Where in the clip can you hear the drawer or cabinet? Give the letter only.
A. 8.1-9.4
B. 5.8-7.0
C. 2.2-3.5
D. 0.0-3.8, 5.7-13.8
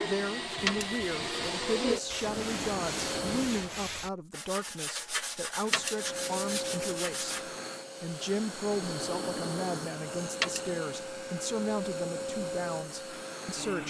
C.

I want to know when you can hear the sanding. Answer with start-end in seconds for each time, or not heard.
0.6-7.5.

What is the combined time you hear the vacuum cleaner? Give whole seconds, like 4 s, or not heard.
12 s.